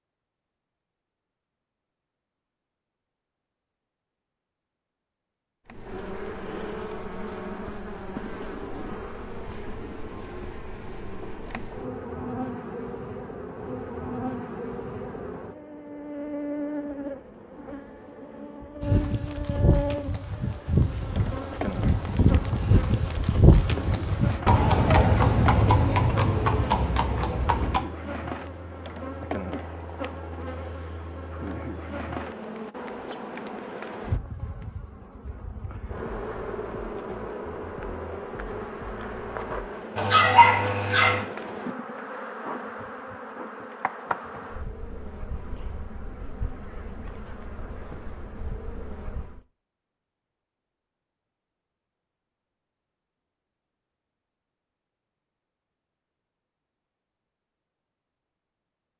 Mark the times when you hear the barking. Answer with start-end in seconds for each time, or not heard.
40.0-41.2.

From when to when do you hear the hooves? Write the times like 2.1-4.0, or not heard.
18.8-27.8.